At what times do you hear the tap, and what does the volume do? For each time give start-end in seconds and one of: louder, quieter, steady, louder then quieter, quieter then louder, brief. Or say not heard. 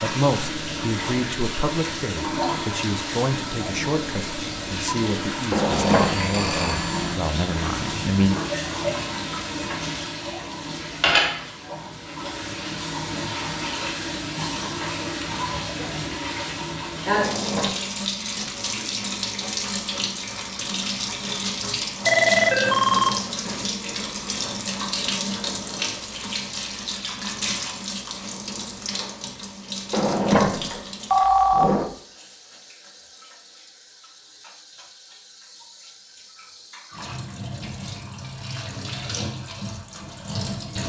0.0-40.8 quieter.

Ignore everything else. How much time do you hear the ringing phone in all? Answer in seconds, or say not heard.
3 s.